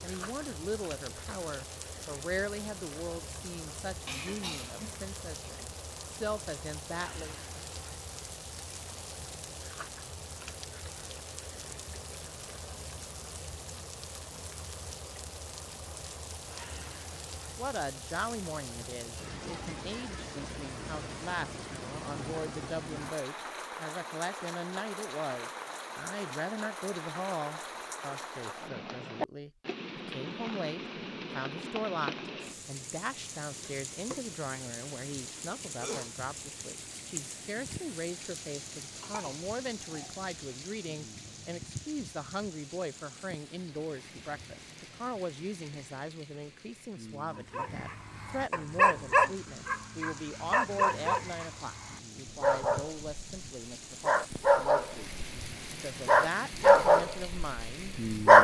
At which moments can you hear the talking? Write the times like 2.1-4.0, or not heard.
0.0-7.3, 17.6-55.1, 55.7-58.3.